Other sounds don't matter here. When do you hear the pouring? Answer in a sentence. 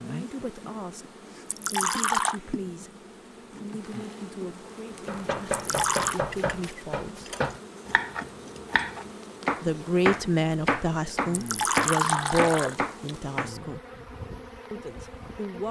The pouring can be heard from 1.4 to 2.4 s, from 5.5 to 6.2 s and from 11.3 to 12.8 s.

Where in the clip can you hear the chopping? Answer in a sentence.
The chopping can be heard from 5.0 to 13.5 s.